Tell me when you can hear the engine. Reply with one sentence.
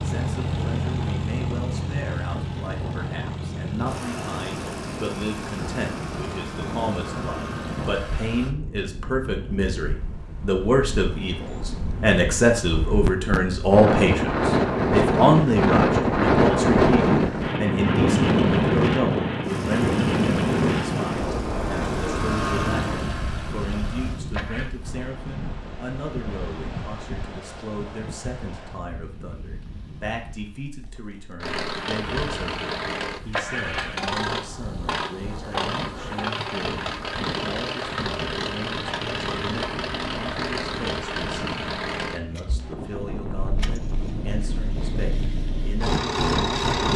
The engine can be heard from 0.0 to 8.6 s, from 19.4 to 24.7 s and from 31.4 to 46.9 s.